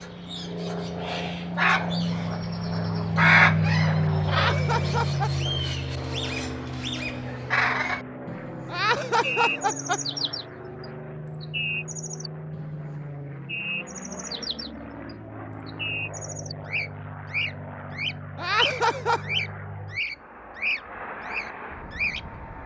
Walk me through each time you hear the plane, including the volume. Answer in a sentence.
You can hear the plane from 0.0 to 22.6 s, getting quieter.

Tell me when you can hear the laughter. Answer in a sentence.
The laughter can be heard from 4.2 to 5.5 s, from 8.7 to 10.0 s and from 18.4 to 19.2 s.